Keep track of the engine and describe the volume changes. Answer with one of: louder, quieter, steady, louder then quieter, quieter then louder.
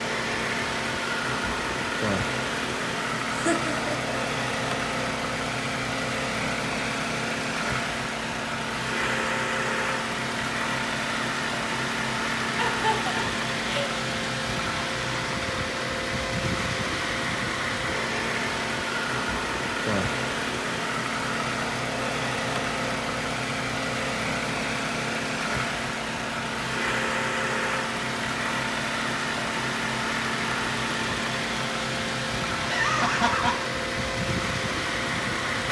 steady.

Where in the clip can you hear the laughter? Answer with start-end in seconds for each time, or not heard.
3.3-4.1, 12.6-13.9, 32.6-33.6.